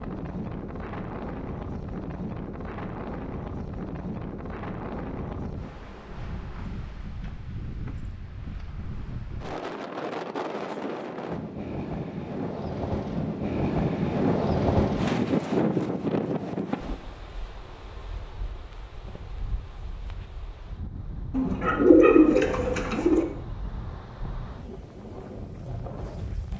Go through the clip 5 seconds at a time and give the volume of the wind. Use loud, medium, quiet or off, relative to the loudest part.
medium, medium, loud, loud, quiet, medium.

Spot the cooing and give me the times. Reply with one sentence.
The cooing can be heard from 21.3 to 23.2 s.